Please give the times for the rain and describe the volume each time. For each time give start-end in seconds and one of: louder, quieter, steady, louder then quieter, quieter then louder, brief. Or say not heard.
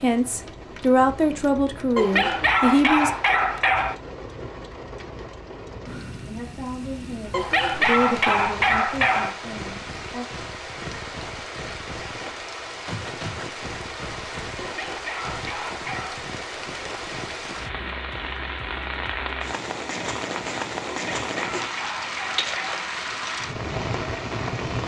0.0-24.8 louder.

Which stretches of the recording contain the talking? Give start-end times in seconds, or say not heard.
0.0-3.1, 6.2-10.2.